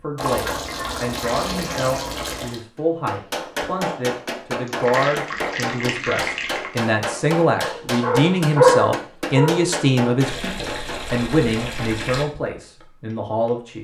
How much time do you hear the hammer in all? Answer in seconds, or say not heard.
11 s.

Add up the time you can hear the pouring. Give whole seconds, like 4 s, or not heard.
7 s.